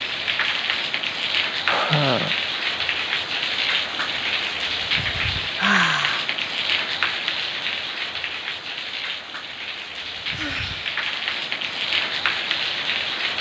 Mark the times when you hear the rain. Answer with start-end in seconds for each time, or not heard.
0.0-13.3.